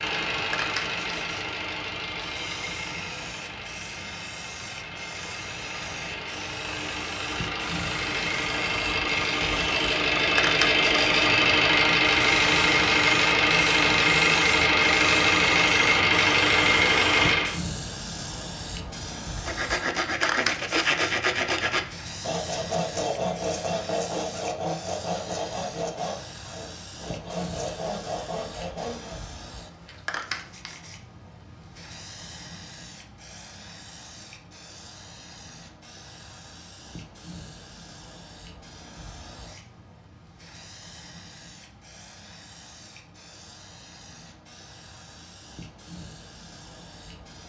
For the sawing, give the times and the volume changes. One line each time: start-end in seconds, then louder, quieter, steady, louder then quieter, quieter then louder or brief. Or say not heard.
19.4-29.2 quieter.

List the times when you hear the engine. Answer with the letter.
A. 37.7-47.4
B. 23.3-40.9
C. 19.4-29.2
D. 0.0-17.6
D.